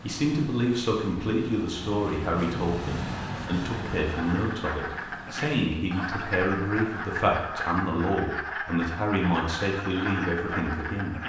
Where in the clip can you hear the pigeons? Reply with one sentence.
You can't hear the pigeons here.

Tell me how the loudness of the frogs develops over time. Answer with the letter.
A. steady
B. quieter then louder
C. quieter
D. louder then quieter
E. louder
A.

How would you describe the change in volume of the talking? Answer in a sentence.
The volume of the talking stays about the same.